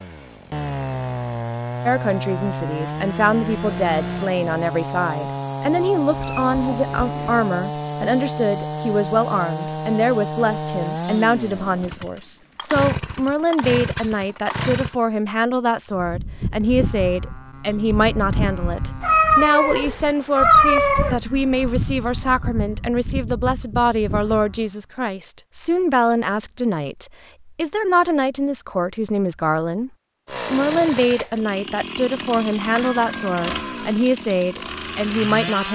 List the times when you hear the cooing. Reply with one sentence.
You can't hear the cooing here.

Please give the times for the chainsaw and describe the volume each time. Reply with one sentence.
The chainsaw can be heard from 0.0 to 15.0 s, at a steady volume; and from 30.2 to 35.7 s, at a steady volume.